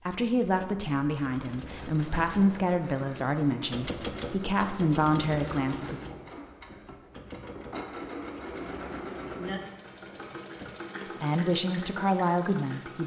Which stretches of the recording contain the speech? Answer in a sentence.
You can hear the speech from 0.1 to 6.0 s and from 11.2 to 13.0 s.